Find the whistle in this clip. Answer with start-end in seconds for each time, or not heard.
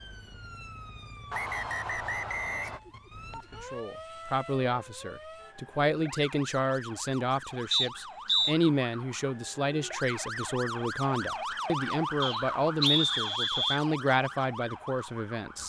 1.3-2.8, 7.7-8.6, 12.2-13.8.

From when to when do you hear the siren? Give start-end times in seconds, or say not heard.
0.0-15.6.